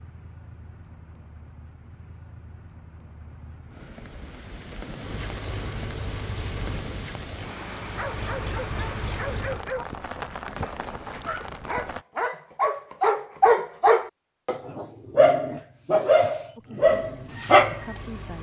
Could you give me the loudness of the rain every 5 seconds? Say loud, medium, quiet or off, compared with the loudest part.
medium, loud, loud, off.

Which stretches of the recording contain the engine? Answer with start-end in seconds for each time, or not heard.
5.0-9.7, 16.9-18.3.